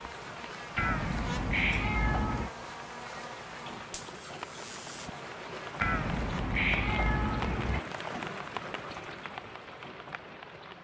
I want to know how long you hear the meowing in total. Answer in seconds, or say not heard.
4 s.